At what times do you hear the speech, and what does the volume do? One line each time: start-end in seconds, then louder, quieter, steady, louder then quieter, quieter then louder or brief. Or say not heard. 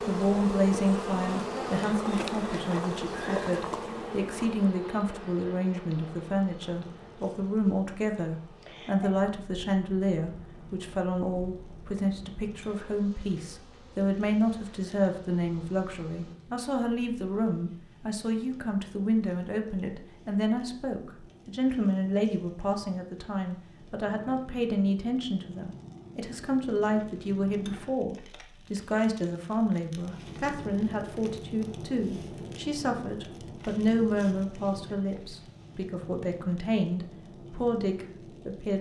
0.1-38.7 steady.